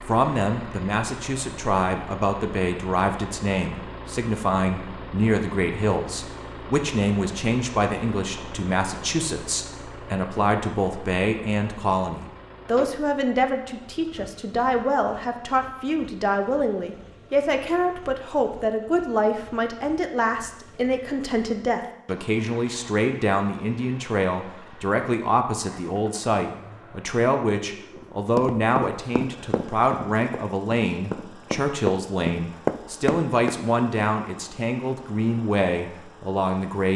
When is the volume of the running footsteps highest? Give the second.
33 s.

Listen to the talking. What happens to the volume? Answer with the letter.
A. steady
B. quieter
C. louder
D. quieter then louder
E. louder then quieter
A.